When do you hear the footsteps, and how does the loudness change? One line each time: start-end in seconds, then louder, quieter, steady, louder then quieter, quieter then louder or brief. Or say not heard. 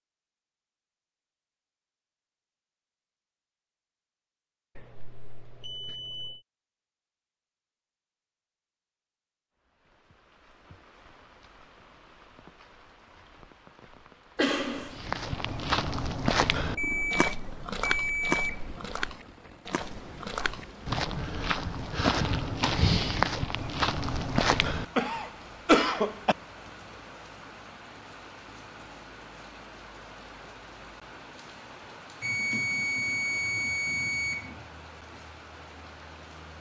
14.9-24.9 quieter then louder.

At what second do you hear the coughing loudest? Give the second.
26 s.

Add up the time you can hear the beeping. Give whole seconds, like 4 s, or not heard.
6 s.